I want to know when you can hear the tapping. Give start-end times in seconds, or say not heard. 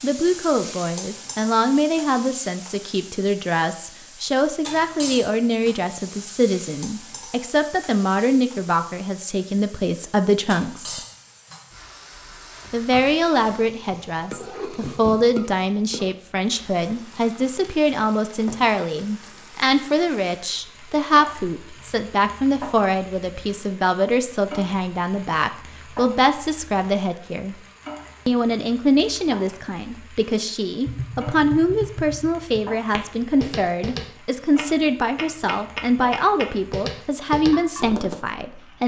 30.9-38.2.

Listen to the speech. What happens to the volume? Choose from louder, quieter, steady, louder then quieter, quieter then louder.
steady.